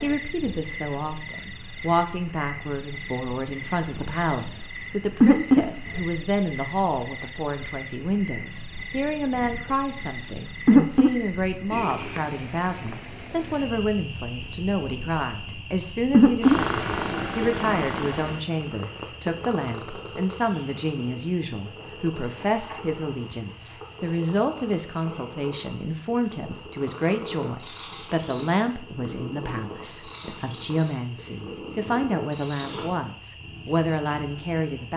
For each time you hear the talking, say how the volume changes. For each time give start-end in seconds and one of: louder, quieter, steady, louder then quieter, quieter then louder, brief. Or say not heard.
0.0-34.9 steady.